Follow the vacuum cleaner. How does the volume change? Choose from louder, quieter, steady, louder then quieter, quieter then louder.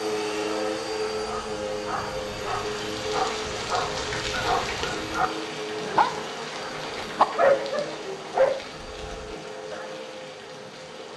quieter.